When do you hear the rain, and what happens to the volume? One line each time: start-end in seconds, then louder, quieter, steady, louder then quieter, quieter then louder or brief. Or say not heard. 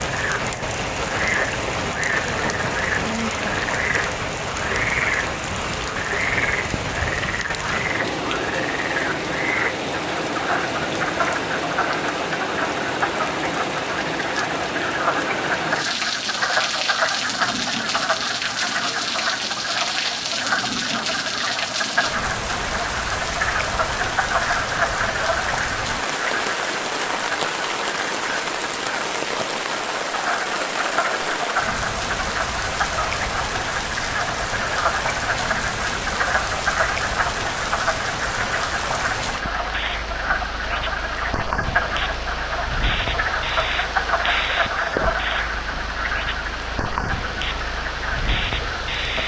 0.0-49.2 steady.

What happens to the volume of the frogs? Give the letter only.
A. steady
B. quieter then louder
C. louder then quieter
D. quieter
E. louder
A.